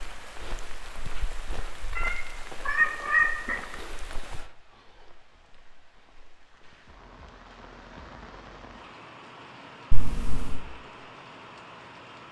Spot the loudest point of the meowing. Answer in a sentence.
The volume of the meowing peaks at 3 seconds.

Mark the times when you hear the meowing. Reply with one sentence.
The meowing can be heard from 1.9 to 3.5 s and from 9.9 to 10.6 s.